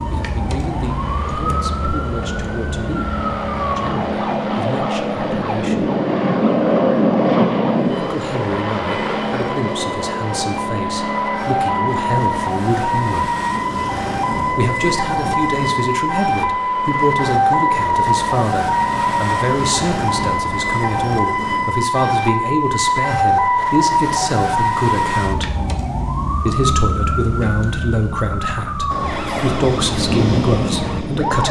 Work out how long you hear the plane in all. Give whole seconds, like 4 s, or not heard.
24 s.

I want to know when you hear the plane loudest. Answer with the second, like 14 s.
7 s.